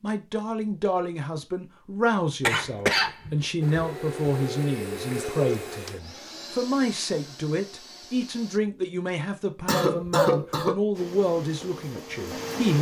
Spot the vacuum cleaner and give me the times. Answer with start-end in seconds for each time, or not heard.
3.6-8.6, 10.9-12.7.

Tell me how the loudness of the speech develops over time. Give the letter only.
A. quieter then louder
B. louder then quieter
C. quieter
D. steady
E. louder
D.